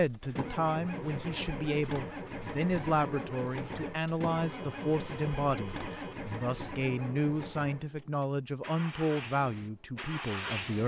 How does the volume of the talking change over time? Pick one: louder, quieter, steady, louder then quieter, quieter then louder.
steady.